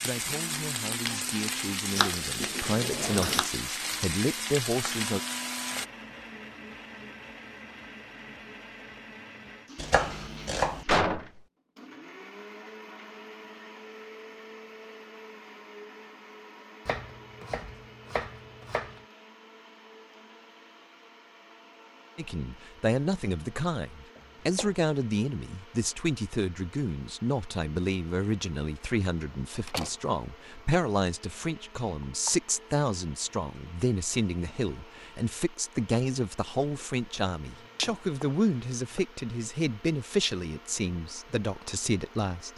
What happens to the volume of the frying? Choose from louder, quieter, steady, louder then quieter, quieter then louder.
steady.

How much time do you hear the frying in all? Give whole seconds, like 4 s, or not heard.
6 s.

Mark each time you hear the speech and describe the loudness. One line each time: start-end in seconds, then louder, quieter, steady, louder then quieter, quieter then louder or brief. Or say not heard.
0.0-5.2 louder
22.1-42.5 steady.